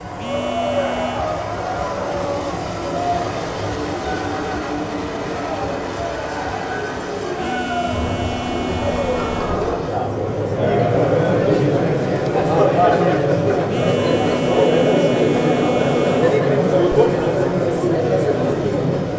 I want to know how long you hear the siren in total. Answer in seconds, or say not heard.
not heard.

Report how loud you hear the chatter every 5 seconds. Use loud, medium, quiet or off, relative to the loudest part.
medium, medium, loud, loud.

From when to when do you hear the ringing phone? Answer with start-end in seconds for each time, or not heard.
0.2-1.2, 7.3-9.7, 13.7-16.4.